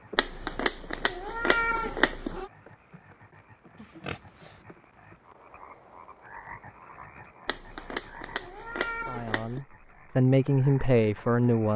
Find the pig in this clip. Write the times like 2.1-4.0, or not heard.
3.8-4.7.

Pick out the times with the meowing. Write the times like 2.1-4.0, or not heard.
0.1-2.5, 7.5-9.6.